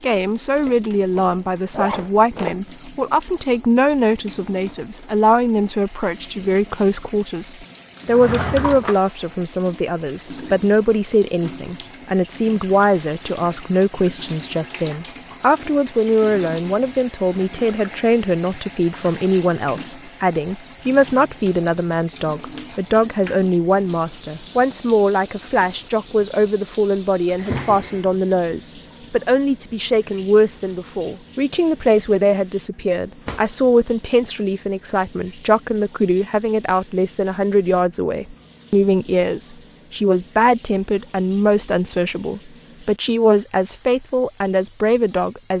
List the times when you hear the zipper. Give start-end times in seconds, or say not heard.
0.7-2.5.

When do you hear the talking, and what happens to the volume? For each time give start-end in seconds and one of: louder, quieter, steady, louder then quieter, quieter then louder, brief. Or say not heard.
0.0-45.5 steady.